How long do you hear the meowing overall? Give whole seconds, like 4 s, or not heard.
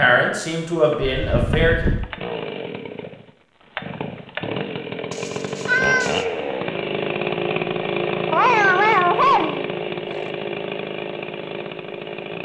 4 s.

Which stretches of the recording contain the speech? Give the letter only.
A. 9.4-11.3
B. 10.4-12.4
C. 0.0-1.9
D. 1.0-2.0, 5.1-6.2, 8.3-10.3
C.